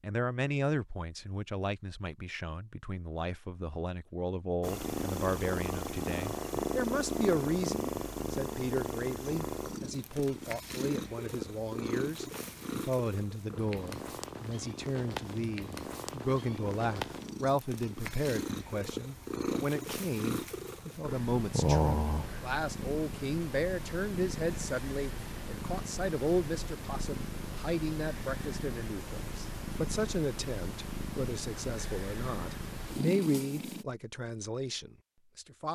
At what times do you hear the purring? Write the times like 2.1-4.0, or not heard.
4.6-33.9.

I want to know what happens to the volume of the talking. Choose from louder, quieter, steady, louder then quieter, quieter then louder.
steady.